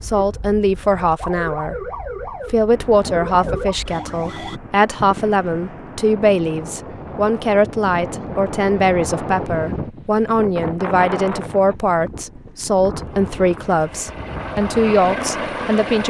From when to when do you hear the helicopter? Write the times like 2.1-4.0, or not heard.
12.9-16.0.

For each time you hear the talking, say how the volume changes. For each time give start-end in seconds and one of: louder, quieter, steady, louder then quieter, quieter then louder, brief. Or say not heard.
0.0-1.8 brief
2.5-16.0 steady.